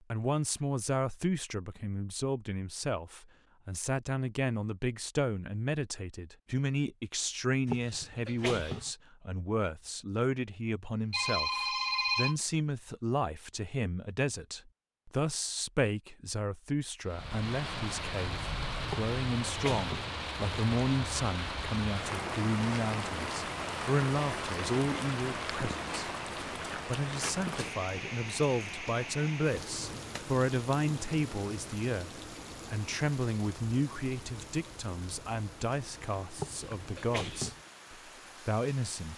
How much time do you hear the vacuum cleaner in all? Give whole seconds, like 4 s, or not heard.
not heard.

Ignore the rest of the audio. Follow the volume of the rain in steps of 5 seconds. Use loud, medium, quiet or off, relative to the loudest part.
off, off, off, loud, loud, loud, medium, quiet.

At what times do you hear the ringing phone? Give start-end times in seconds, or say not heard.
11.1-12.3.